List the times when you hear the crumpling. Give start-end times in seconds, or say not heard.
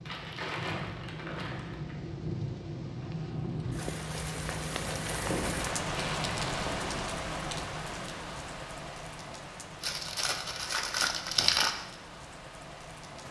0.1-1.9, 5.2-6.9, 9.8-11.7.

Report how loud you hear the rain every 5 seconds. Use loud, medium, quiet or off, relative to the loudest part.
loud, loud, medium.